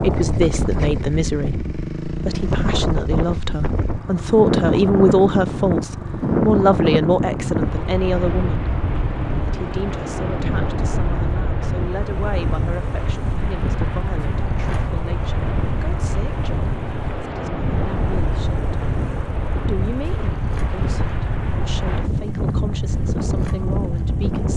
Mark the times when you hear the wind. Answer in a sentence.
You can hear the wind from 0.0 to 24.5 s.